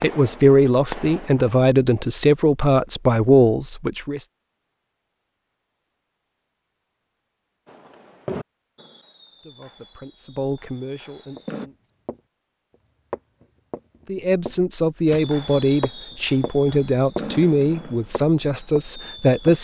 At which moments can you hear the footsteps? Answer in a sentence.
You can hear the footsteps from 11.3 to 12.2 s, from 13.1 to 17.2 s and from 18.1 to 19.6 s.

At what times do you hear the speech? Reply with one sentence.
You can hear the speech from 0.0 to 4.2 s, from 9.4 to 11.8 s and from 14.1 to 19.6 s.